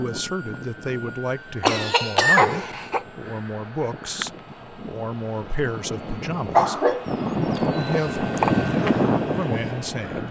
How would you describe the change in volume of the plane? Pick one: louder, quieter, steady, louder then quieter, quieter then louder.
louder.